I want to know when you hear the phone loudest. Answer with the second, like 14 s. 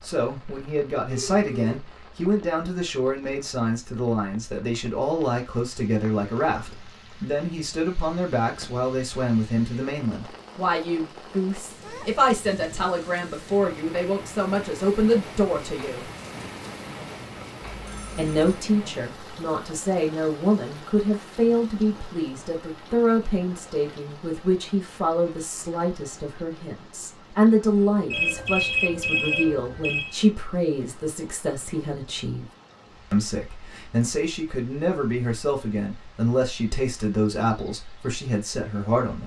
29 s.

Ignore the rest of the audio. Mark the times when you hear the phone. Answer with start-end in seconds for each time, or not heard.
1.1-1.8, 17.6-18.6, 28.1-30.1.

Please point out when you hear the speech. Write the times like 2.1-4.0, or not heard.
0.0-16.1, 18.1-32.5, 33.1-39.2.